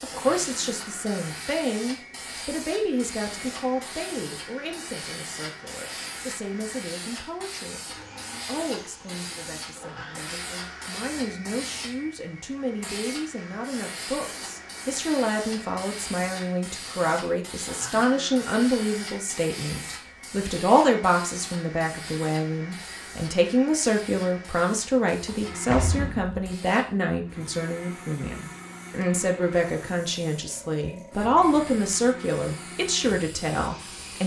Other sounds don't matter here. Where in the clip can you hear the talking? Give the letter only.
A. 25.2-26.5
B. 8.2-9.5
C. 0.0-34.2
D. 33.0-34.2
C.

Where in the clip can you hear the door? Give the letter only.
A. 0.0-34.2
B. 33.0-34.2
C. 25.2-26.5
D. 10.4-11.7
C.